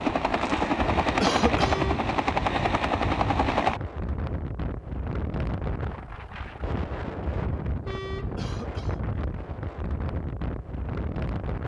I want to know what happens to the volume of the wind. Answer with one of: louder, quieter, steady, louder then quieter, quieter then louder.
steady.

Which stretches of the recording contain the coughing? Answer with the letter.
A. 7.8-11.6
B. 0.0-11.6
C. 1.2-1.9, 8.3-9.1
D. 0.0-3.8
C.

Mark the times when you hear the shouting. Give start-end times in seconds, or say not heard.
not heard.